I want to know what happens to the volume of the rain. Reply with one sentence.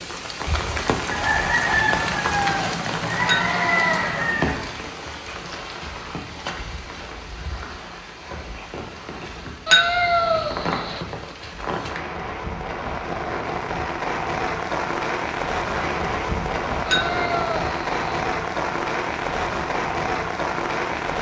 The volume of the rain goes down, then up.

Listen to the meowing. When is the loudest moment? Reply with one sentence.
The volume of the meowing peaks at 10 seconds.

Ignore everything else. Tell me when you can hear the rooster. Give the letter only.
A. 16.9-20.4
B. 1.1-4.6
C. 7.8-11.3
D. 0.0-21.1
B.